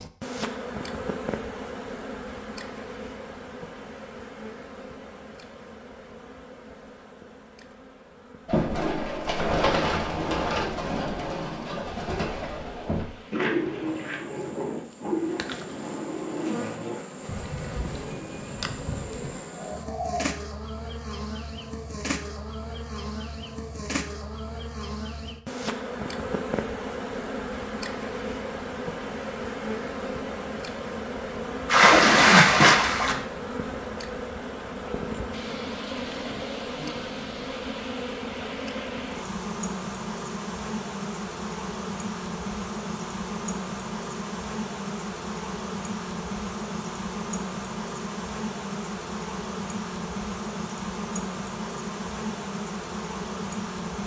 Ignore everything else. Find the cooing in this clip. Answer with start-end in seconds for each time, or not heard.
8.4-20.3.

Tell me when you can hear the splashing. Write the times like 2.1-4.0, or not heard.
31.6-33.2.